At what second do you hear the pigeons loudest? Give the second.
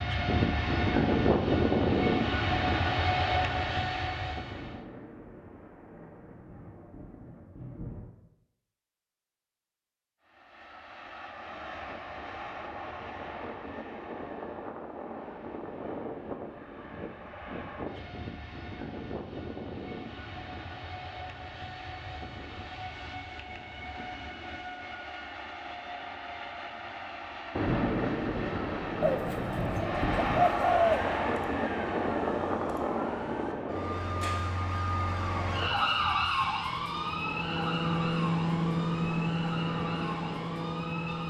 31 s.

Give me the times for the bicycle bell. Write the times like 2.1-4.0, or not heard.
not heard.